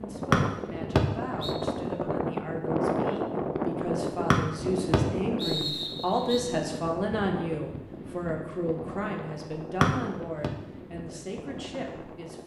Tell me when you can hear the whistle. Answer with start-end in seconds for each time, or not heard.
0.3-1.6, 4.3-6.4, 9.8-10.5.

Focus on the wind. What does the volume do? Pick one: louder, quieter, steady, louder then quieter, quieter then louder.
quieter.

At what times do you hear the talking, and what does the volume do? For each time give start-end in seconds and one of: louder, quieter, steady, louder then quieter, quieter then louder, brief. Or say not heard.
0.0-12.4 louder then quieter.